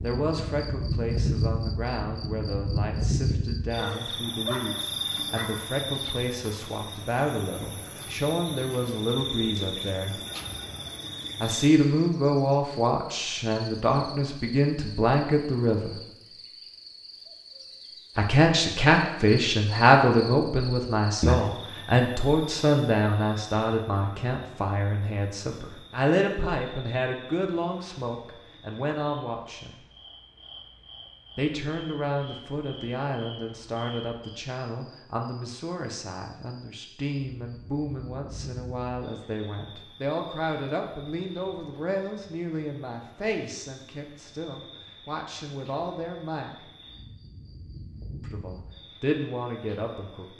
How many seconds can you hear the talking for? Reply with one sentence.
The talking can be heard for 44 seconds in total.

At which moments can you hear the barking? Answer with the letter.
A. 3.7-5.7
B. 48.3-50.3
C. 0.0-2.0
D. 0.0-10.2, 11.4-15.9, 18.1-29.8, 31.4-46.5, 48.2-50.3
A.